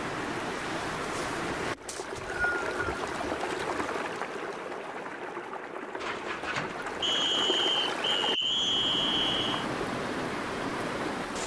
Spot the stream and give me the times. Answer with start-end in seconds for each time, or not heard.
0.0-11.4.